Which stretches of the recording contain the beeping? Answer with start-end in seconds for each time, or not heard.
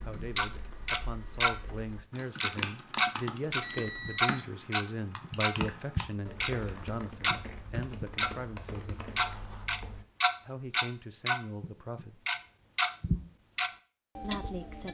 3.5-4.5.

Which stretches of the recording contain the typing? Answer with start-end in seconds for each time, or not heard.
0.0-10.1.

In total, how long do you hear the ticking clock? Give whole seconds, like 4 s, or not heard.
14 s.